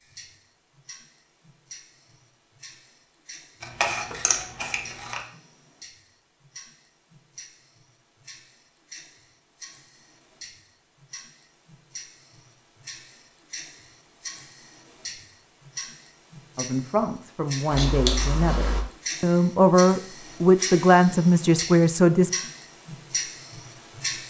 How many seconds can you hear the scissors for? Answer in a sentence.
The scissors can be heard for 3 seconds in total.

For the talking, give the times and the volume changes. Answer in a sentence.
You can hear the talking from 16.6 to 22.3 s, getting louder.